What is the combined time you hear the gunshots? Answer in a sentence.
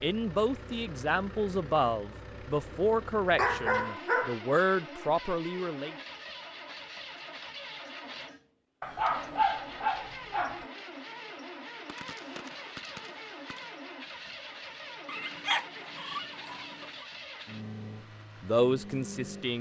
You can hear the gunshots for 2 seconds altogether.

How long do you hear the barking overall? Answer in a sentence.
The barking can be heard for 5 seconds in total.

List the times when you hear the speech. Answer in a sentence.
The speech can be heard from 0.0 to 6.0 s and from 18.4 to 19.5 s.